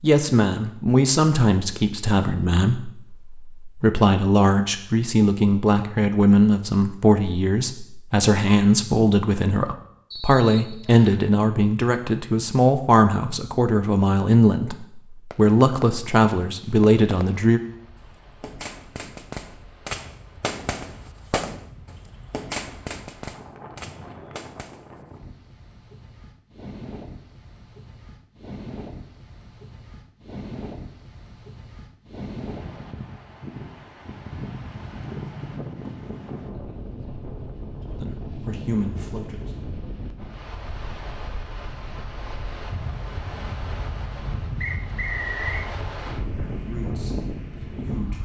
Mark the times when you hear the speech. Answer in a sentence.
The speech can be heard from 0.0 to 17.6 s, from 38.0 to 39.5 s and from 46.4 to 48.2 s.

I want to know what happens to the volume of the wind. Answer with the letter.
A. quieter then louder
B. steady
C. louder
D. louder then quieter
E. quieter
C.